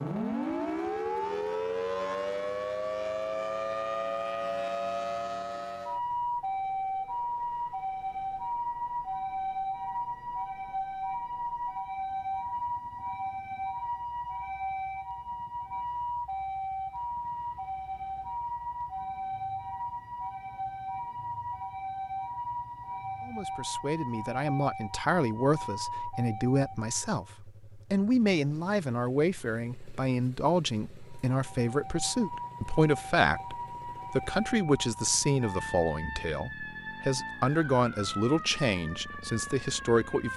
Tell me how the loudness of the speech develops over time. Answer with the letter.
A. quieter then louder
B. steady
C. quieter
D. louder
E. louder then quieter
B.